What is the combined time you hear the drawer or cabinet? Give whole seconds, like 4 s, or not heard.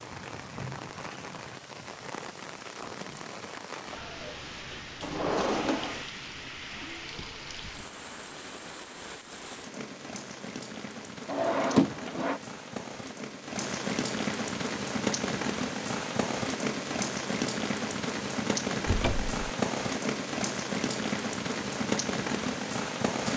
3 s.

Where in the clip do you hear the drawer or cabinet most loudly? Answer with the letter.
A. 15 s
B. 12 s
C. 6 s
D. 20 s
B.